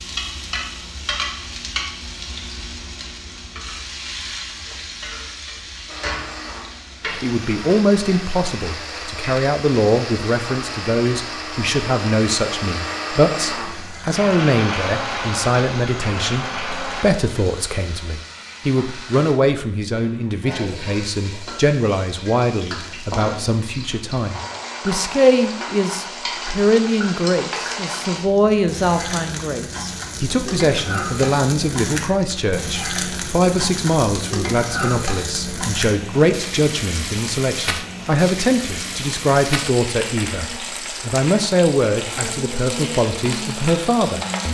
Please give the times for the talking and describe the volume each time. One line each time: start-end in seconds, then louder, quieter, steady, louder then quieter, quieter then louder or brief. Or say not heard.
7.2-44.5 steady.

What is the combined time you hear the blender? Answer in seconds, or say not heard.
11 s.